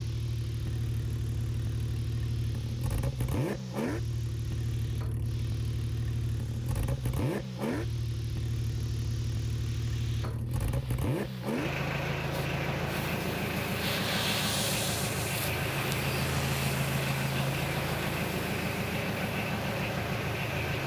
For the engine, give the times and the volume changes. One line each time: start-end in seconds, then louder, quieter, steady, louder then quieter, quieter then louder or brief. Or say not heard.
0.0-20.8 steady.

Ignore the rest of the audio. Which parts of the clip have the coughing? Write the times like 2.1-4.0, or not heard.
not heard.